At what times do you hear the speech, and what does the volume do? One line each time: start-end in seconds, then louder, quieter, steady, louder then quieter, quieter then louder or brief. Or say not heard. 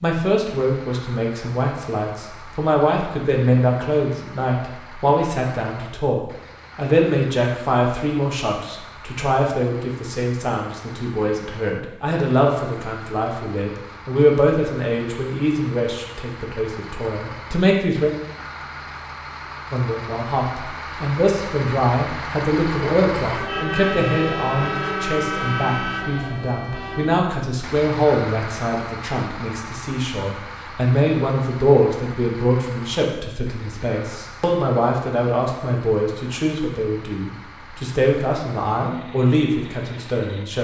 0.0-18.1 steady
19.7-40.5 steady.